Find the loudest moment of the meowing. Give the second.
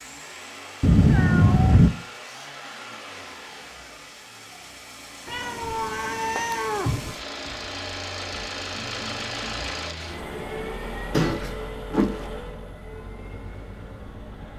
1 s.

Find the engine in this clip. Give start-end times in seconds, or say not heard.
0.0-14.5.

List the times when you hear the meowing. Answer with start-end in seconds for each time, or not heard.
0.8-1.9, 5.2-7.2, 11.1-12.3.